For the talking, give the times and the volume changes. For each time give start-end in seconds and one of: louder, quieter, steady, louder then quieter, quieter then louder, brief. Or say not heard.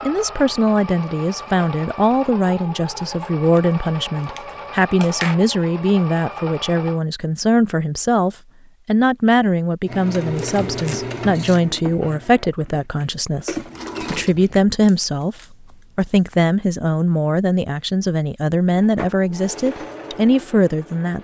0.0-21.2 steady.